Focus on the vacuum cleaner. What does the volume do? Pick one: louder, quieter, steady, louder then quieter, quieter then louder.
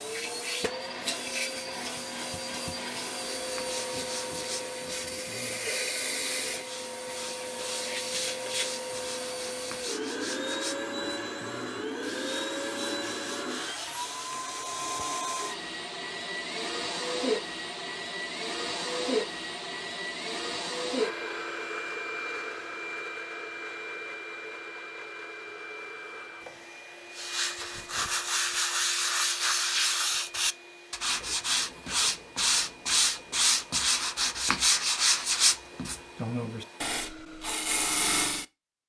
quieter.